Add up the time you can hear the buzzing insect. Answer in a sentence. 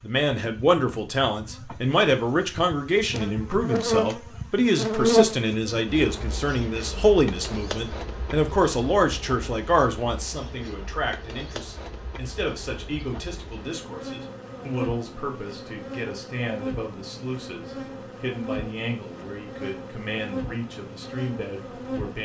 The buzzing insect can be heard for 22 seconds in total.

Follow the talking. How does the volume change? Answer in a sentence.
The loudness of the talking goes down.